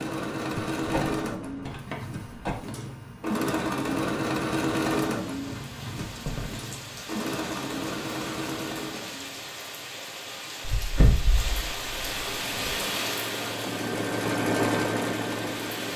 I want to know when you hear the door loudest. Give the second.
11 s.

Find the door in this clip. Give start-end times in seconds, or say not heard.
0.6-2.6, 6.0-6.6, 10.7-12.8.